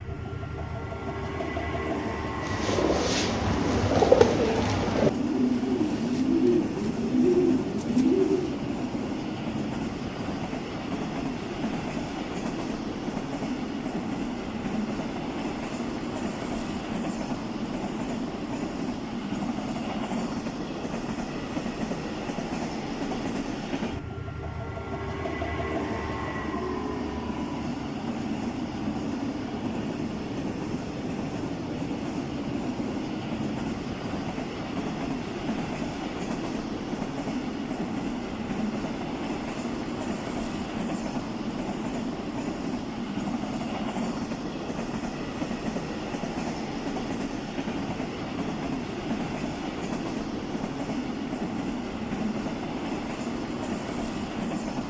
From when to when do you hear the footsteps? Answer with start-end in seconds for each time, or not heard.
not heard.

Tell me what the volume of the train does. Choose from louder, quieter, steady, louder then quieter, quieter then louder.
steady.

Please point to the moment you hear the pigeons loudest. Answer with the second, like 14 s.
4 s.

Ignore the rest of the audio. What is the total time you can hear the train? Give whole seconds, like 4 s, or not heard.
55 s.